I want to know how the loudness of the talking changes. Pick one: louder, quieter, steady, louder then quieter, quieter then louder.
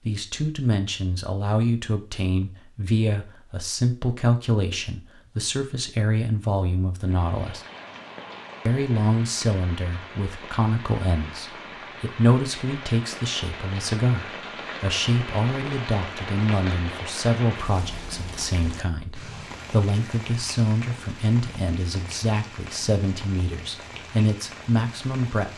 steady.